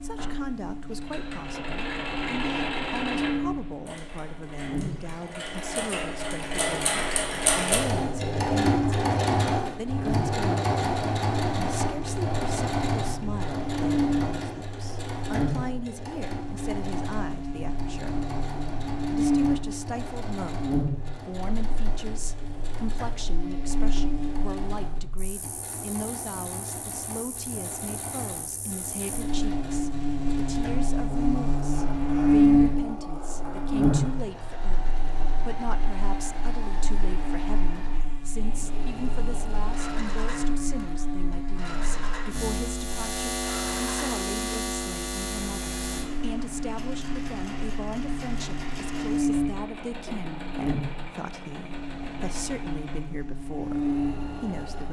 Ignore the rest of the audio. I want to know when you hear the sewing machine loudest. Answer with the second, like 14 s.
9 s.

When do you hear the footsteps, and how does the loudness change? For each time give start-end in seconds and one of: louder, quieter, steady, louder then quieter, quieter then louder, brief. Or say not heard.
not heard.